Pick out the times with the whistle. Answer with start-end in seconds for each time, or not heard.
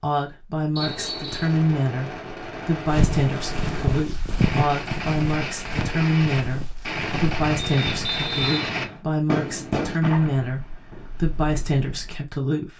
0.8-1.6, 7.6-9.0.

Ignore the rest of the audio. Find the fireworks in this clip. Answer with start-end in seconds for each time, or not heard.
0.8-12.2.